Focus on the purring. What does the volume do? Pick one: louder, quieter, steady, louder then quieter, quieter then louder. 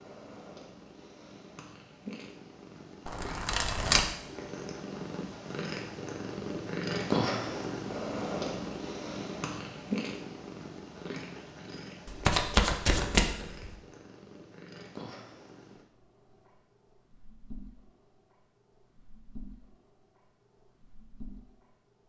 louder then quieter.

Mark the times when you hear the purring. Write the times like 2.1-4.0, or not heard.
0.0-22.0.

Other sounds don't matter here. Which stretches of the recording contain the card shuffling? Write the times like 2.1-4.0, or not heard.
3.0-4.0, 12.1-13.2.